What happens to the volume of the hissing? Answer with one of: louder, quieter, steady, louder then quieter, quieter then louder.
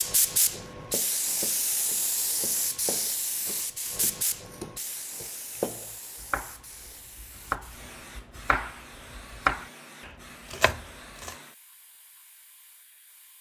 quieter.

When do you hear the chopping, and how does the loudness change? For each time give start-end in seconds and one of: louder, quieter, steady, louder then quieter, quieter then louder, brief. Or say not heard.
0.5-11.3 louder.